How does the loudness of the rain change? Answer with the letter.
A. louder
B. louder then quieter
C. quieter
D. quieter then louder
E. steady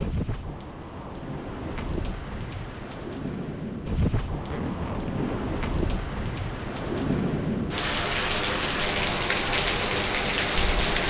A.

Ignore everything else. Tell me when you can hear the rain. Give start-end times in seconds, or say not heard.
0.0-11.0.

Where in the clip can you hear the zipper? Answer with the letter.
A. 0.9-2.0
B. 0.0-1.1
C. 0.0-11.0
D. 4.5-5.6
D.